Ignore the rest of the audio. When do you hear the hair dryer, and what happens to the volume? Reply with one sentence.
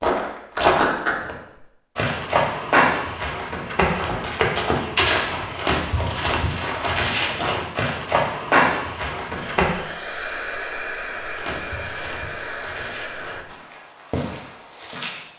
You can hear the hair dryer from 9.3 to 13.4 s, at a steady volume.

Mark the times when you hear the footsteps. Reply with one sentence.
The footsteps can be heard from 0.0 to 1.4 s, from 1.9 to 9.8 s and from 11.2 to 15.3 s.